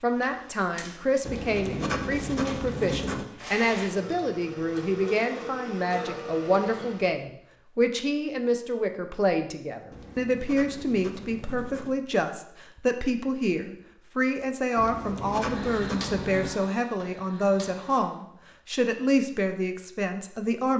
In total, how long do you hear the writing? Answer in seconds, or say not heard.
6 s.